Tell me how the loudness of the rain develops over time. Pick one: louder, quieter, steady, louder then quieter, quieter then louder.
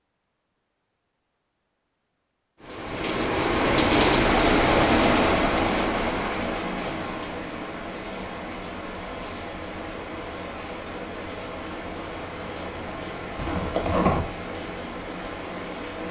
quieter.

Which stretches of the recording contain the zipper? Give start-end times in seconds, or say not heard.
13.3-14.2.